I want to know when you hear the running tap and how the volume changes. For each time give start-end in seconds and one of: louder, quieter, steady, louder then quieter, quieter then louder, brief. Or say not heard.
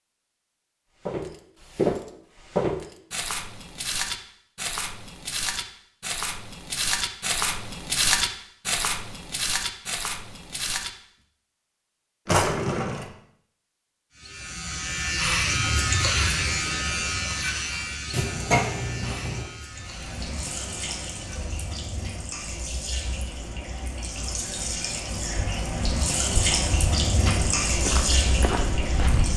19.6-29.3 louder.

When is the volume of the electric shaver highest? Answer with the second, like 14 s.
16 s.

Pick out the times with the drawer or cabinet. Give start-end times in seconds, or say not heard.
12.2-13.1, 18.1-19.5.